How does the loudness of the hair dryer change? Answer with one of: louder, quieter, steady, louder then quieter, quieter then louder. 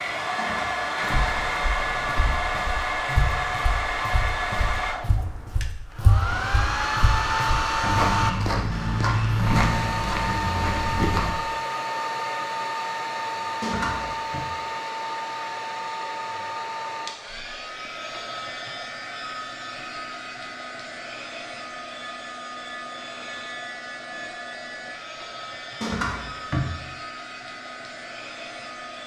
quieter.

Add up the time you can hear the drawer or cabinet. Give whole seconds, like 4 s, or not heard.
4 s.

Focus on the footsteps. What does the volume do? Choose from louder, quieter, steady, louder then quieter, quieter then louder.
louder.